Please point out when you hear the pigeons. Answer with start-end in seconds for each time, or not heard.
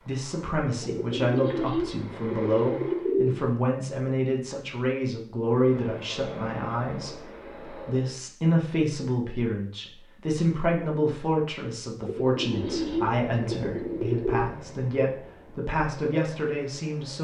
0.8-3.4, 12.0-14.5.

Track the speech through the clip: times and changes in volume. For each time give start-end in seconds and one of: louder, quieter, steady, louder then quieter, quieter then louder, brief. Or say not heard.
0.0-17.2 steady.